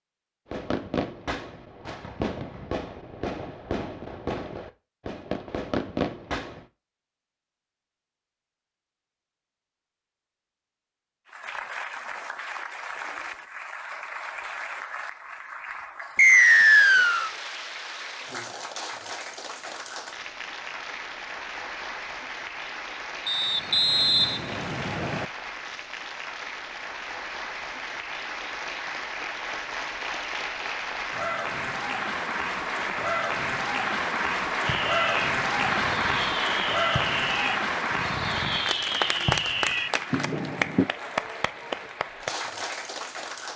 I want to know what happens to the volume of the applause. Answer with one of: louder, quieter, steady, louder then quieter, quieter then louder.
louder.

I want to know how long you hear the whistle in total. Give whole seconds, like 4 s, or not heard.
3 s.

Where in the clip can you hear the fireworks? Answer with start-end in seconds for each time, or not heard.
0.5-6.7, 34.6-40.9.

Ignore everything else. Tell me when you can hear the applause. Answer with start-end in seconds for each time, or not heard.
11.2-43.5.